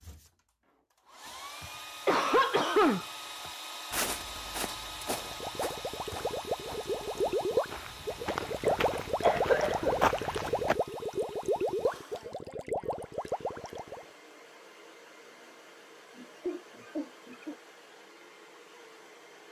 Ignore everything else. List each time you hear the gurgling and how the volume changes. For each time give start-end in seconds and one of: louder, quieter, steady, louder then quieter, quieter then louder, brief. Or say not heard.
5.1-14.1 louder then quieter.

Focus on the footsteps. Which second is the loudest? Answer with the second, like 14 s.
10 s.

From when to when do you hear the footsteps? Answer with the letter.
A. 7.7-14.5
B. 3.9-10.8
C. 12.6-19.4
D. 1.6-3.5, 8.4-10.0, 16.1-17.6
B.